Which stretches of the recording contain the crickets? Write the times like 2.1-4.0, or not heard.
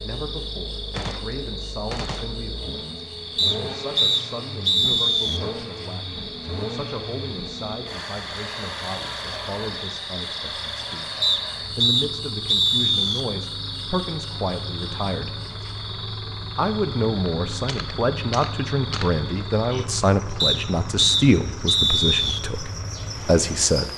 0.0-23.9.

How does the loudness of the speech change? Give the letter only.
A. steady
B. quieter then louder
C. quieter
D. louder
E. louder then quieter
D.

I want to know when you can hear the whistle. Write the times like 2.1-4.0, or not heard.
3.4-5.4, 11.2-13.2, 20.4-22.4.